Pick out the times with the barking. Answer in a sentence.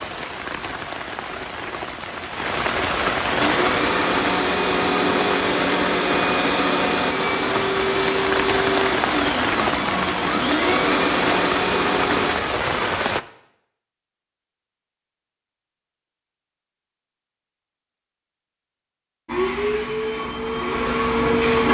The barking can't be heard in this clip.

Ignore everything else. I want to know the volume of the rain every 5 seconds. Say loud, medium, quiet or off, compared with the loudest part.
loud, loud, loud, off, off.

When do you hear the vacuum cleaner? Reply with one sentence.
You can hear the vacuum cleaner from 3.4 to 12.4 s and from 19.2 to 21.7 s.